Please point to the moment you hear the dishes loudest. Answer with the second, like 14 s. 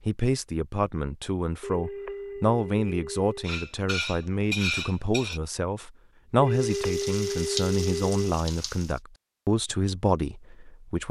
5 s.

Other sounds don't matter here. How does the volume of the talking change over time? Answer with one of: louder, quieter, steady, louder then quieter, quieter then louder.
steady.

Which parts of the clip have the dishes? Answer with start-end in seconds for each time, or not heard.
3.4-5.4.